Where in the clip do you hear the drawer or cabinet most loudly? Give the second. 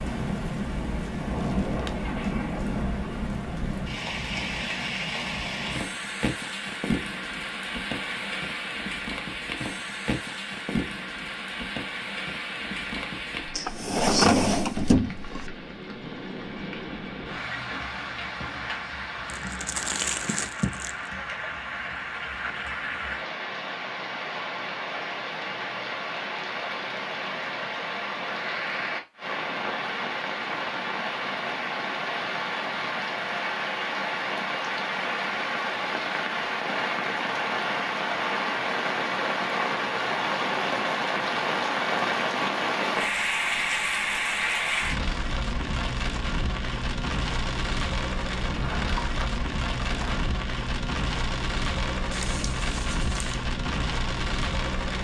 14 s.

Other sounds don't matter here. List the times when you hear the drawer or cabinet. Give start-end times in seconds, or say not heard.
13.6-15.4, 48.4-50.3.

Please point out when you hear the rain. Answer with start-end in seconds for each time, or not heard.
0.0-54.9.